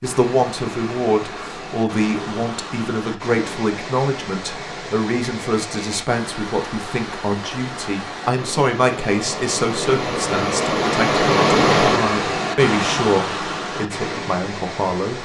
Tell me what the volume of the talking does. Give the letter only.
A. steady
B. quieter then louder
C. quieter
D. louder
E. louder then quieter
A.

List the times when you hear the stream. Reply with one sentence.
You can hear the stream from 0.0 to 15.2 s.